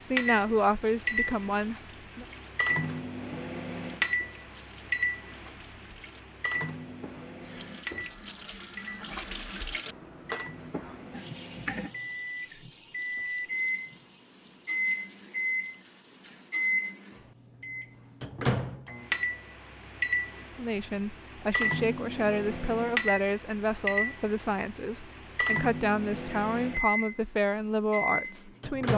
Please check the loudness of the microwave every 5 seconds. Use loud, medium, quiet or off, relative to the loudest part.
loud, medium, loud, loud, loud, loud.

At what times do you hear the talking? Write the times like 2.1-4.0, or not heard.
0.0-2.2, 20.6-28.9.